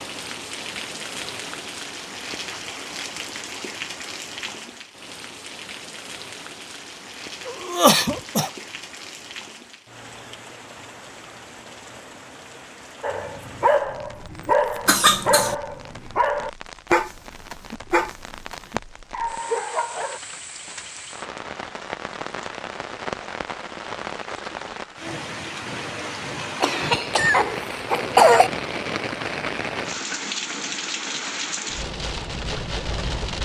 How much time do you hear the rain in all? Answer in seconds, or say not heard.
33 s.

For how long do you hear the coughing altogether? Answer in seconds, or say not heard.
4 s.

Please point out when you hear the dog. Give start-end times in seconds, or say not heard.
13.0-20.2.